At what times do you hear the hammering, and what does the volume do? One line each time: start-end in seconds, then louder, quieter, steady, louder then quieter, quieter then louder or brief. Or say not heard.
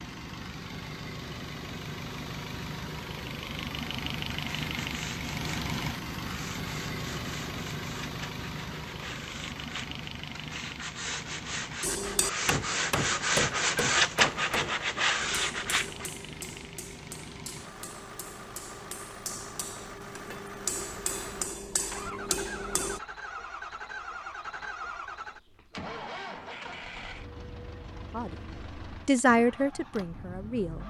11.8-23.0 quieter then louder.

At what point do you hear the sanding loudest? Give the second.
14 s.